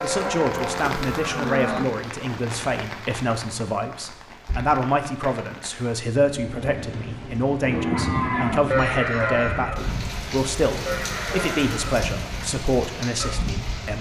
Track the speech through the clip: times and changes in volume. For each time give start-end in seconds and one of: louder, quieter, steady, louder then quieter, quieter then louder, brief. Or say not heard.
0.0-13.9 steady.